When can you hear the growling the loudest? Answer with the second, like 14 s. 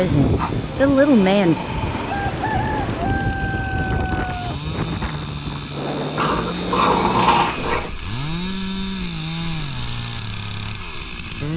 7 s.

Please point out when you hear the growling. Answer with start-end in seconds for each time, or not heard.
0.3-2.0, 6.2-7.9.